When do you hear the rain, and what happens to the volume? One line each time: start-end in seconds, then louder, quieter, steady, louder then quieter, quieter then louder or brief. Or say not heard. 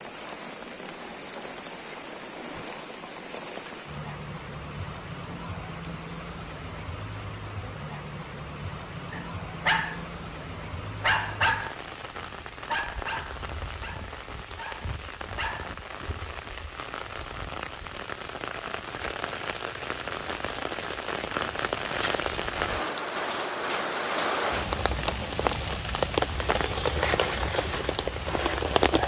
0.0-29.0 louder.